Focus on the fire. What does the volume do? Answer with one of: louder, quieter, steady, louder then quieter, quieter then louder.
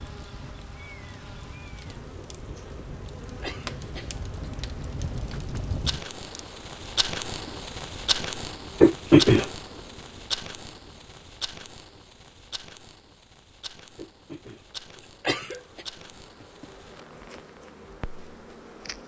louder then quieter.